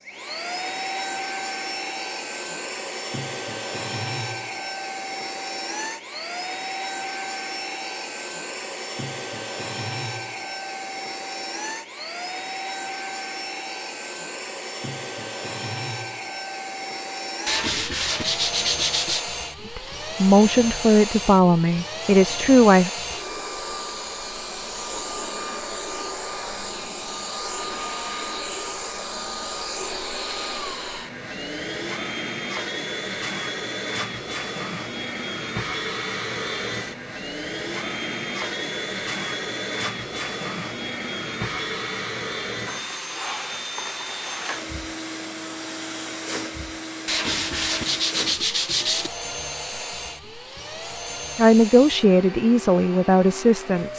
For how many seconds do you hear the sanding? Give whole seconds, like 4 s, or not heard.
4 s.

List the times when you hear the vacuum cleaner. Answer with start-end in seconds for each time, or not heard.
0.0-53.9.